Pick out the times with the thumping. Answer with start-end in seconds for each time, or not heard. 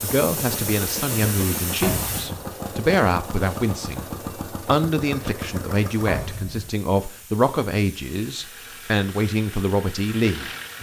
1.8-2.5, 6.0-6.7.